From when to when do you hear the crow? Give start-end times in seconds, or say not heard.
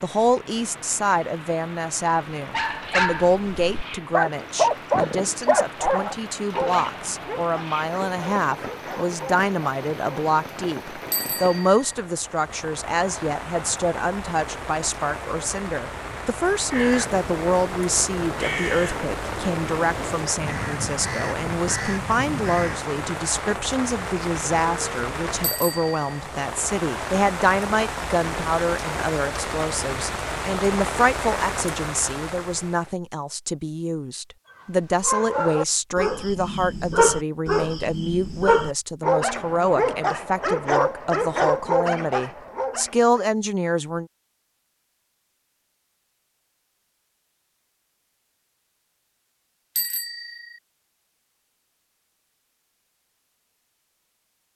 16.7-22.9.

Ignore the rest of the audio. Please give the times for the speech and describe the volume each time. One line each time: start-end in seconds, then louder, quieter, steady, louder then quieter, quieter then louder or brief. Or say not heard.
0.0-44.0 steady.